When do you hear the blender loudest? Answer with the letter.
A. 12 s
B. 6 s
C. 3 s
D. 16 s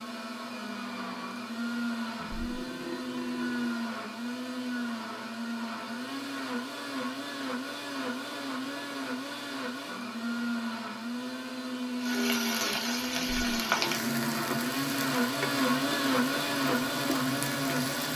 D.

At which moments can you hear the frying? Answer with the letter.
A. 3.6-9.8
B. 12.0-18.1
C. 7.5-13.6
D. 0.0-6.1
B.